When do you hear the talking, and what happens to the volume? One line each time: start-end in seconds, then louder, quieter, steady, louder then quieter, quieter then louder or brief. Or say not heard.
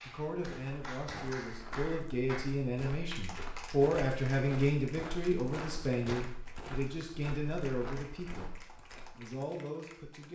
0.1-8.6 louder then quieter
9.2-10.3 brief.